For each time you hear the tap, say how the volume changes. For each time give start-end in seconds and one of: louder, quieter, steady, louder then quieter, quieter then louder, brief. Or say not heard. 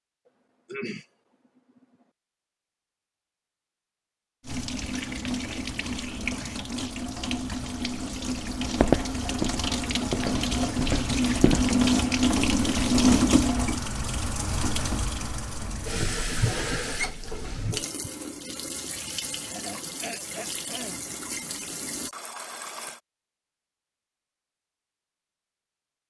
4.4-23.0 louder then quieter.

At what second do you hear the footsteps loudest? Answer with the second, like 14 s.
9 s.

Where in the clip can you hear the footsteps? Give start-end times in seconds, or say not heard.
8.8-11.8.